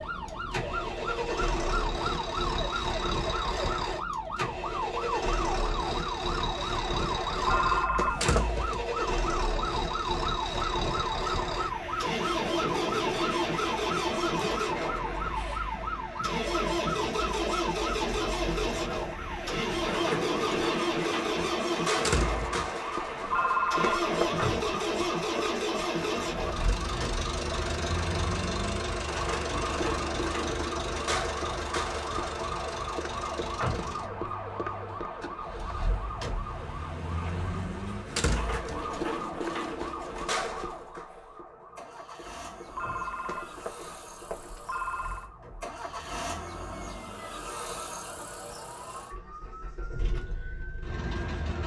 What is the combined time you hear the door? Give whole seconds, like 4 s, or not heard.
2 s.